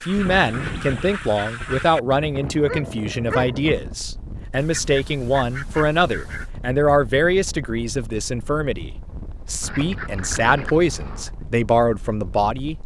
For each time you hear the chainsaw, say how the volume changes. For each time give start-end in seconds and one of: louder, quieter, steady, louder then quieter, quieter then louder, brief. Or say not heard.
not heard.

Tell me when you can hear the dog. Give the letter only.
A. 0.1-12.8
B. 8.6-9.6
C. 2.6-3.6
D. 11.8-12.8
C.